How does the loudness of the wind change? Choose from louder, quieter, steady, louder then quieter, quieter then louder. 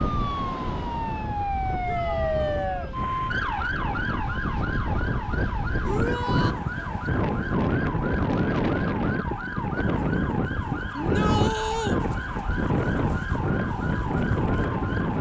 louder.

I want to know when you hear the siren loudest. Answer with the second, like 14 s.
2 s.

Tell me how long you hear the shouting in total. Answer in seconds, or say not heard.
3 s.